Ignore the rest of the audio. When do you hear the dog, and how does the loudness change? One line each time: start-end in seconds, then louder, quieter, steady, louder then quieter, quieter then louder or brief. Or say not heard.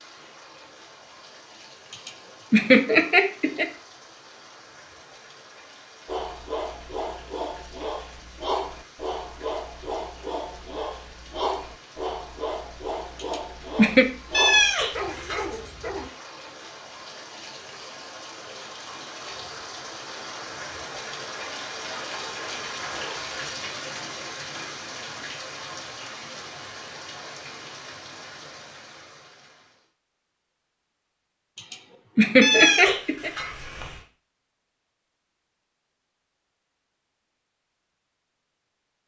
6.0-16.1 steady.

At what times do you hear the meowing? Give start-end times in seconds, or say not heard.
14.3-15.4, 32.4-34.0.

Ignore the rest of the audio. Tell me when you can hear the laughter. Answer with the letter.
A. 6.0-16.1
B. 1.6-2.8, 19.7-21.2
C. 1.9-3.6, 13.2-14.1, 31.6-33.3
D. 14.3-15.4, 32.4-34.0
C.